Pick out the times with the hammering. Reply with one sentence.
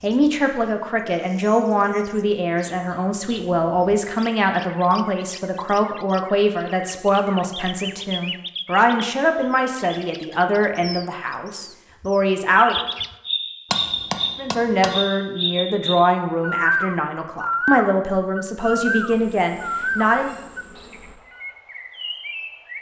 You can hear the hammering from 13.7 to 15.0 s.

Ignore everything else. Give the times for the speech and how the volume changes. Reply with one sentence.
The speech can be heard from 0.0 to 12.8 s, at a steady volume; and from 14.3 to 20.3 s, at a steady volume.